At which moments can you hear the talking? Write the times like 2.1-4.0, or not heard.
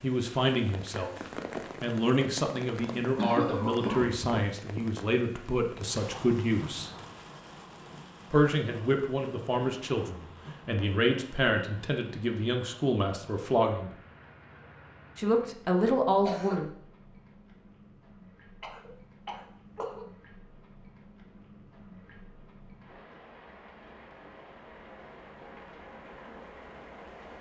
0.0-1.1, 1.8-6.9, 8.3-13.9, 15.2-16.7.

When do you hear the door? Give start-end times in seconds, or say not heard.
not heard.